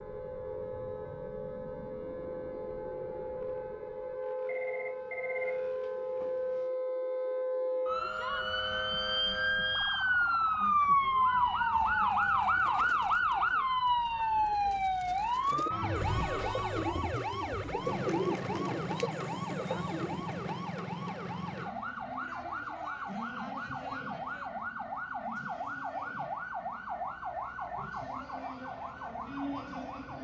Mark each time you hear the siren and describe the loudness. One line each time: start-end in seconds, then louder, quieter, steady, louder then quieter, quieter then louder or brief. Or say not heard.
0.0-30.1 louder then quieter.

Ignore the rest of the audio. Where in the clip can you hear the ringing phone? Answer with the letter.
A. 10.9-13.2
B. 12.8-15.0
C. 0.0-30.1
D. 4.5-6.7
D.